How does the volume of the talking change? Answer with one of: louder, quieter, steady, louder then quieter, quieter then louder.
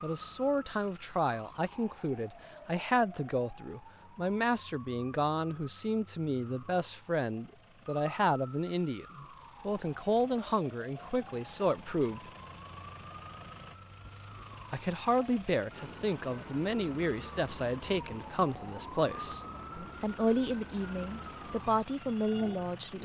steady.